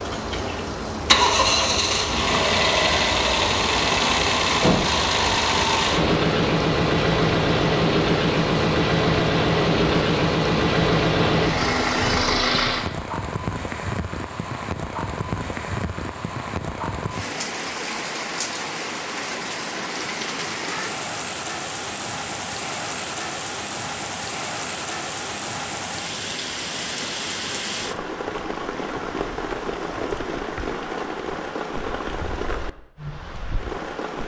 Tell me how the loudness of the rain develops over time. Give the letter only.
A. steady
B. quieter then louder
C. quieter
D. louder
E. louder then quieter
A.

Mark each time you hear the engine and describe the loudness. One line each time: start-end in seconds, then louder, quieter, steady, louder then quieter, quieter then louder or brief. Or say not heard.
0.0-12.9 steady.